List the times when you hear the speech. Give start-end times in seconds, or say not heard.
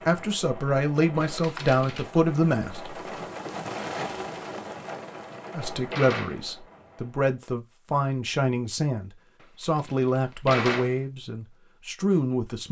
0.1-3.0, 5.5-12.6.